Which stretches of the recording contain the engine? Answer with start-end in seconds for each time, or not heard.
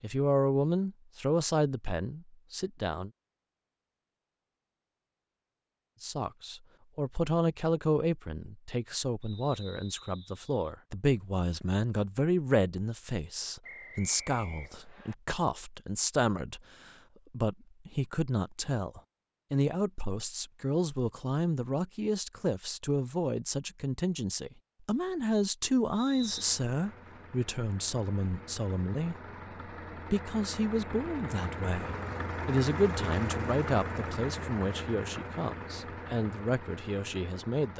26.1-37.7.